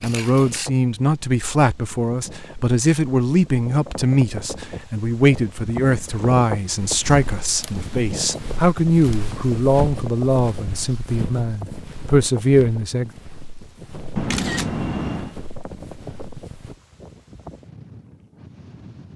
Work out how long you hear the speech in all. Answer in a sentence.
You can hear the speech for 13 seconds altogether.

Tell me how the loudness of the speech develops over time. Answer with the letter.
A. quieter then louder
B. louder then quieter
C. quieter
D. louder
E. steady
E.